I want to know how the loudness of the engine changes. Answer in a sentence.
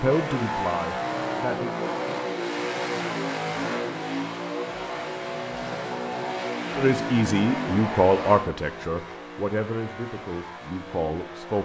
The loudness of the engine goes down.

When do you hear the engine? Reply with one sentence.
The engine can be heard from 0.0 to 11.6 s.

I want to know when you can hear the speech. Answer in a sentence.
You can hear the speech from 0.0 to 1.9 s and from 6.8 to 11.6 s.